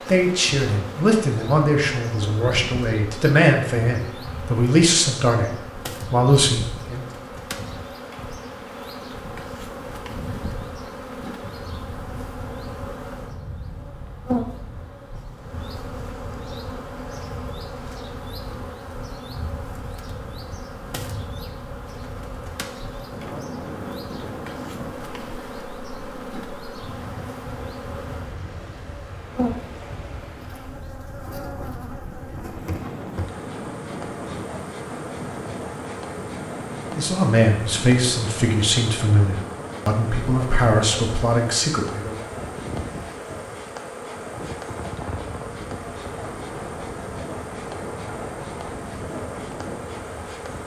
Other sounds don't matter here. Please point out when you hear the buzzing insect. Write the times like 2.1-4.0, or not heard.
0.0-50.6.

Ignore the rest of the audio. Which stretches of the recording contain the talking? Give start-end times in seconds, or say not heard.
0.1-7.0, 37.0-42.2.